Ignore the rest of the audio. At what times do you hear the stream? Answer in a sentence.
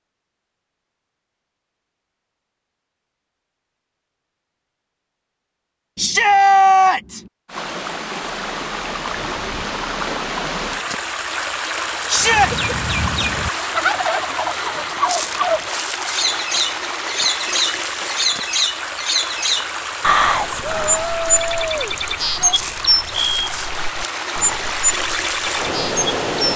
The stream can be heard from 7.5 to 26.5 s.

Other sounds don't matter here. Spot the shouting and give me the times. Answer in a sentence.
You can hear the shouting from 6.0 to 7.2 s, from 12.1 to 12.5 s and from 20.9 to 22.6 s.